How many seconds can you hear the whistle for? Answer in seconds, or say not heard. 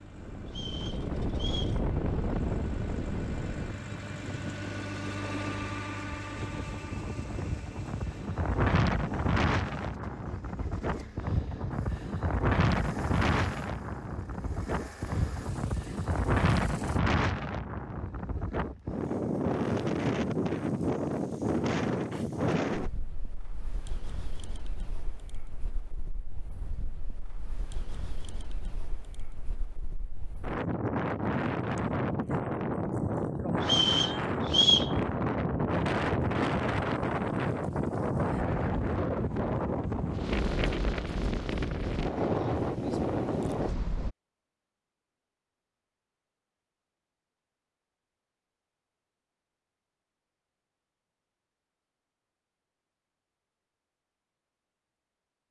3 s.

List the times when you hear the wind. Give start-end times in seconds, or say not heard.
0.1-44.1.